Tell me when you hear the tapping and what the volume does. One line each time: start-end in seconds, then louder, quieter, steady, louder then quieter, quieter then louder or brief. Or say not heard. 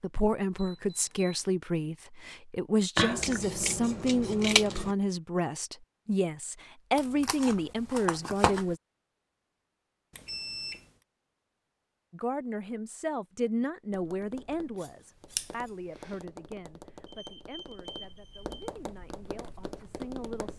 13.9-20.5 louder.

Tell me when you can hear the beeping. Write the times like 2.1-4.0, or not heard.
0.6-1.4, 10.1-10.9, 17.1-18.6.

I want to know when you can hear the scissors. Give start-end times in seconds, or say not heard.
3.0-5.0, 7.0-8.8, 14.8-15.5.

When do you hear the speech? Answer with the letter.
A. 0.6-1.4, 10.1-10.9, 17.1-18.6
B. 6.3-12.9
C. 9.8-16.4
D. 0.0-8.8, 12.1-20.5
D.